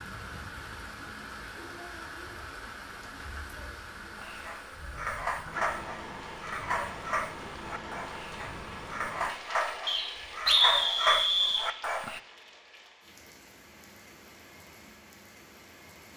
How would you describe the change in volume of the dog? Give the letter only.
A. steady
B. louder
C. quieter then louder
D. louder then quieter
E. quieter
C.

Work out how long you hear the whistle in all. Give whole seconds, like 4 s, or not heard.
2 s.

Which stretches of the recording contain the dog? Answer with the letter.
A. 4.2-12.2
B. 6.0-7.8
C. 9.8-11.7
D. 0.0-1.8
A.